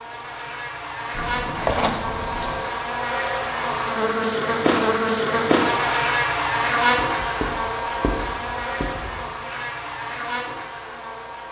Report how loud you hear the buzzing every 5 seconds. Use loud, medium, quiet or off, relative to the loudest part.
loud, loud, medium.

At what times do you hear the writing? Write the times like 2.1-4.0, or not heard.
1.1-2.6, 7.0-9.3.